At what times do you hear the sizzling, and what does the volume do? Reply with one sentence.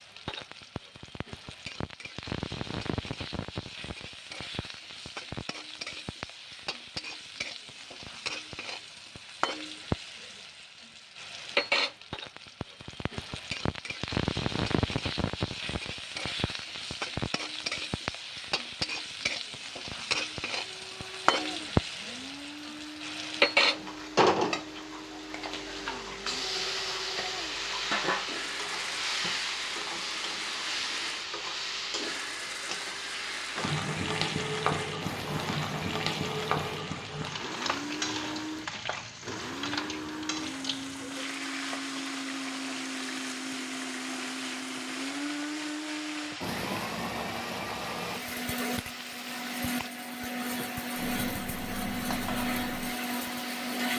You can hear the sizzling from 0.0 to 53.9 s, getting louder then quieter.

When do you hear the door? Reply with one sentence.
The door can't be heard in this clip.